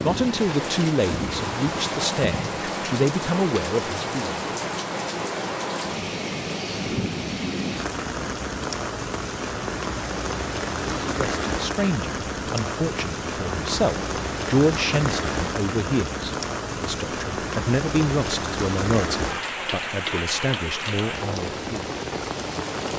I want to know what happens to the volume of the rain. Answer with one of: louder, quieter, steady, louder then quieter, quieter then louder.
steady.